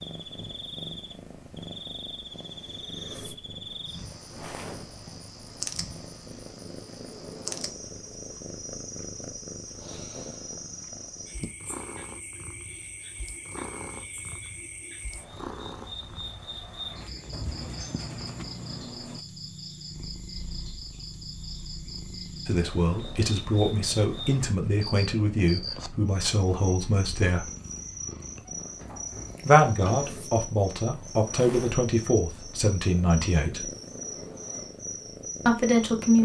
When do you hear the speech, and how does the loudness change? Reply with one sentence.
The speech can be heard from 22.4 to 27.4 s, at a steady volume; from 29.4 to 33.7 s, at a steady volume; and briefly from 35.5 to 36.2 s.